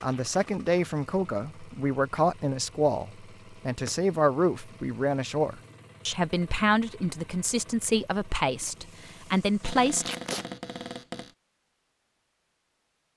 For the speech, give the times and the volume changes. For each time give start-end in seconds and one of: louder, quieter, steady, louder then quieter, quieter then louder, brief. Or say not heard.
0.0-10.1 steady.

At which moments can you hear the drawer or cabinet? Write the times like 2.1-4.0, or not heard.
3.3-4.0, 9.6-11.3.